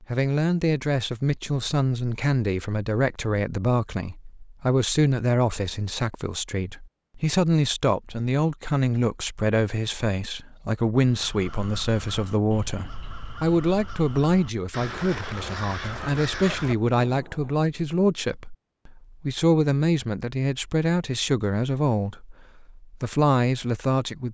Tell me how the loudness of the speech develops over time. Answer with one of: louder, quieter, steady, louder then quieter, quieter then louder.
steady.